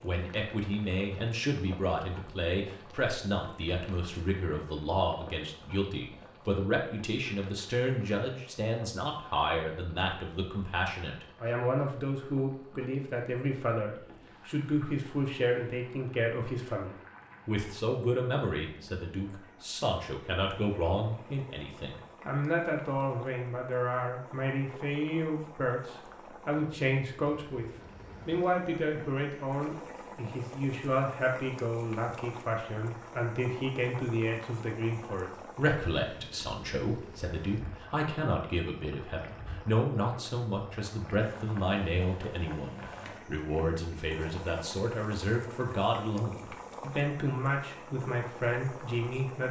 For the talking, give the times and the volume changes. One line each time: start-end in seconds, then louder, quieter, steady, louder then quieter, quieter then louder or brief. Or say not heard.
0.0-49.4 steady.